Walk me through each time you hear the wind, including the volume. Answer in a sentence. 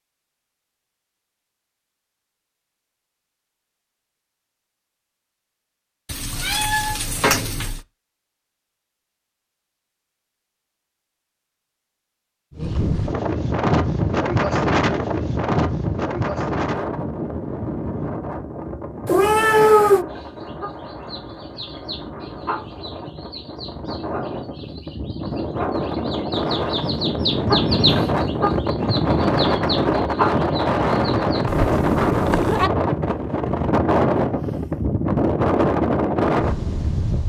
You can hear the wind from 12.5 to 37.2 s, getting quieter then louder.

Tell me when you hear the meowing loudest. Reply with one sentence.
The loudest moment of the meowing is at 20 seconds.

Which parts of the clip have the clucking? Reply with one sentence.
You can hear the clucking from 20.1 to 31.4 s.